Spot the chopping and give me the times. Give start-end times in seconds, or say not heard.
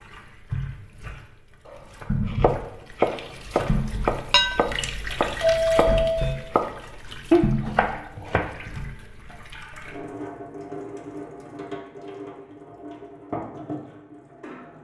2.2-8.5.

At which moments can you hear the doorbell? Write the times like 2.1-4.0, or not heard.
5.4-6.3.